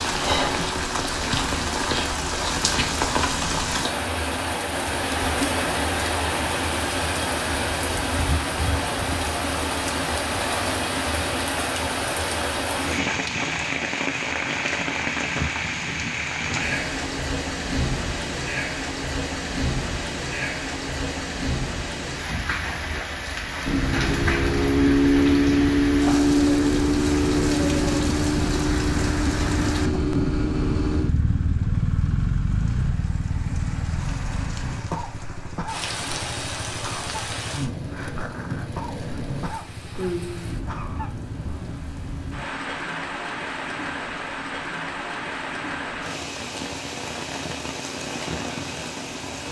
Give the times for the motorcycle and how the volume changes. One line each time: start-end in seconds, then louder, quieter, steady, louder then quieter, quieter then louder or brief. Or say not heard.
23.6-41.8 quieter.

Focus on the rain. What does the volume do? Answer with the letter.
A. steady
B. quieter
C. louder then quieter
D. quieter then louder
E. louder
B.